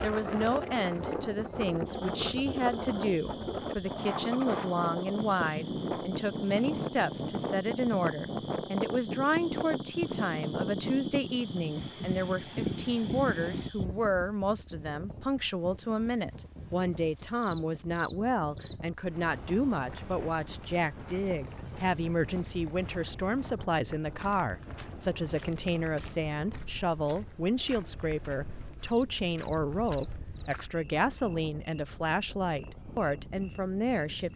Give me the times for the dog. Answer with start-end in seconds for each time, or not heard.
not heard.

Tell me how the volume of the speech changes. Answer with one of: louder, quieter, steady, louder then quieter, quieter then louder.
steady.